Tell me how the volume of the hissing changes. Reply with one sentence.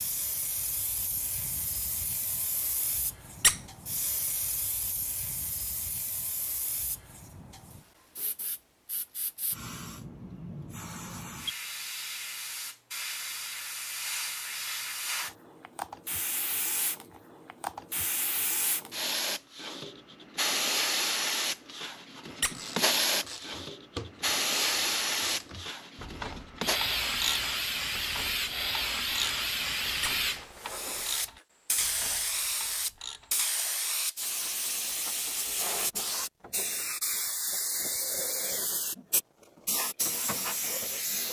The loudness of the hissing goes up.